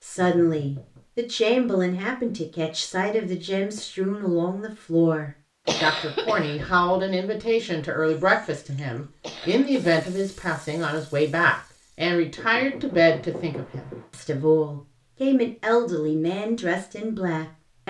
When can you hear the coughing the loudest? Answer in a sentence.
The volume of the coughing peaks at 6 seconds.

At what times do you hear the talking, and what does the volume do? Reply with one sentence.
The talking can be heard from 0.0 to 17.8 s, at a steady volume.